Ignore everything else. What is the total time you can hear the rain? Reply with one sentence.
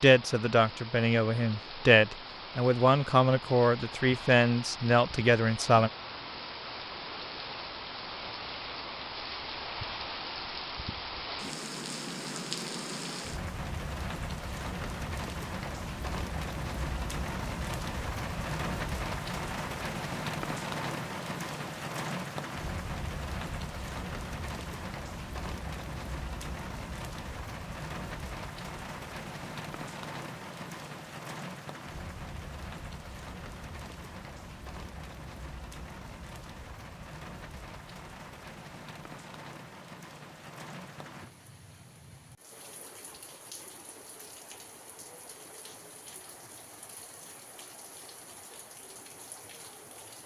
The rain can be heard for 50 seconds in total.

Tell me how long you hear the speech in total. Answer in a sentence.
The speech can be heard for 6 seconds in total.